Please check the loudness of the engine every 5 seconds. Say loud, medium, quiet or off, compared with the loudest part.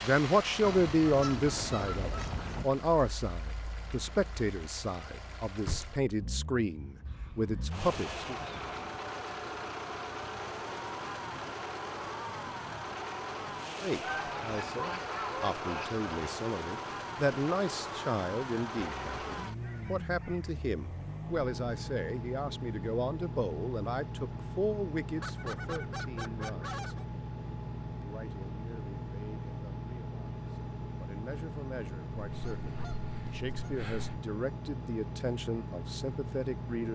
medium, loud, loud, loud, loud, loud, loud, loud.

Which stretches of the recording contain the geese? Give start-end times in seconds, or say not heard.
0.6-2.6, 7.0-8.8, 14.0-16.4, 18.8-20.6, 25.2-27.1, 32.2-34.2.